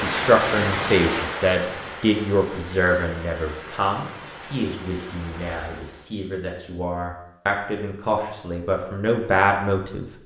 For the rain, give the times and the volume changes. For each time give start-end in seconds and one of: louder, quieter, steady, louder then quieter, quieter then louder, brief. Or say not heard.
0.0-6.1 quieter.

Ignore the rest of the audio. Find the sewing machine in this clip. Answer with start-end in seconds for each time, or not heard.
not heard.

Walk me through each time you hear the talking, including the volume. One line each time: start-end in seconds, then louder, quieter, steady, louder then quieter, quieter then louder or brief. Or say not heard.
0.0-10.1 quieter then louder.